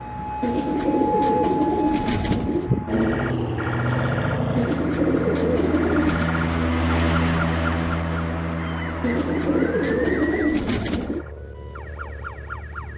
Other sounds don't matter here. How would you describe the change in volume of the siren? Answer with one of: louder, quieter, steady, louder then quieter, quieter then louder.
quieter.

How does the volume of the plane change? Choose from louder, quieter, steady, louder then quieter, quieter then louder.
louder then quieter.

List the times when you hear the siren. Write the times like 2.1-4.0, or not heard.
0.0-12.9.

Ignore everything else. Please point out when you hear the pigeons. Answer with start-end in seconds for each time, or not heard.
0.4-2.7, 4.5-6.3, 9.0-11.2.